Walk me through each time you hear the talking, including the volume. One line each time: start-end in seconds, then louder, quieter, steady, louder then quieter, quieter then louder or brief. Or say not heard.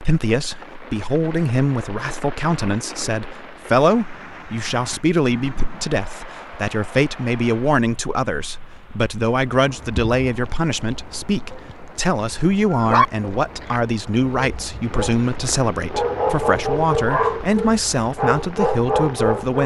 0.0-19.6 steady.